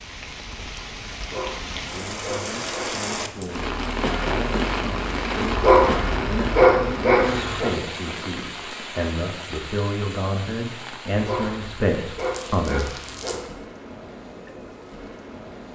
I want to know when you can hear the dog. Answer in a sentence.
The dog can be heard from 1.2 to 3.0 s, from 5.5 to 7.7 s and from 11.1 to 13.4 s.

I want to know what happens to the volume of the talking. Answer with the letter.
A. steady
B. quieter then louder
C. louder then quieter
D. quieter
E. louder
E.